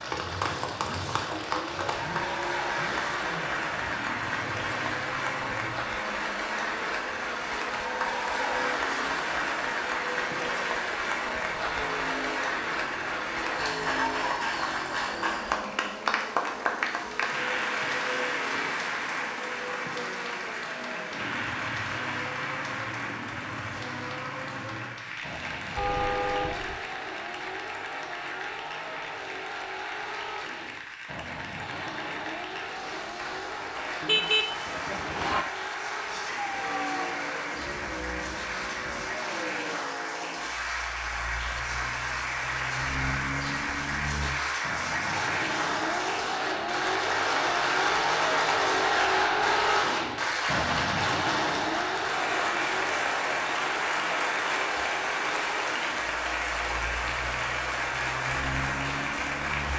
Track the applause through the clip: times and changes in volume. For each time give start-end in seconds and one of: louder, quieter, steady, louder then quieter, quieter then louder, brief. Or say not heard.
0.0-59.7 quieter then louder.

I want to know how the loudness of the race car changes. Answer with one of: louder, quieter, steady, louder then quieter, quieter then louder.
louder.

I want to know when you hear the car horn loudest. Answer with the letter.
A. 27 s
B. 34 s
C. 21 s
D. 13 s
B.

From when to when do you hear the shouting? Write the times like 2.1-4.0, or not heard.
36.1-37.1.